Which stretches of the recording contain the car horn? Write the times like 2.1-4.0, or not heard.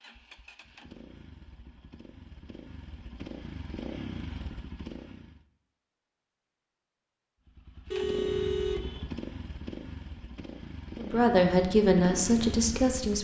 7.9-9.1.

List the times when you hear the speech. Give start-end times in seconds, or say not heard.
10.9-13.2.